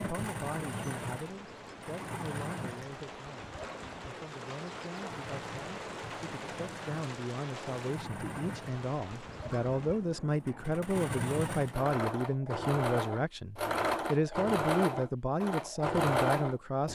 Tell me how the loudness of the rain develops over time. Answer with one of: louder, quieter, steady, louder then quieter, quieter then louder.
louder then quieter.